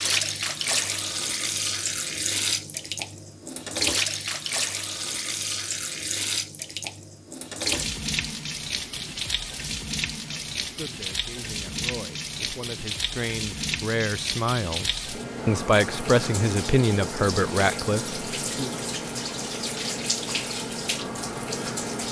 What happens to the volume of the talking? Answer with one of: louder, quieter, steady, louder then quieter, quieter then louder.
louder.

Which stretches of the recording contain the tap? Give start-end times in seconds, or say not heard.
0.0-22.0.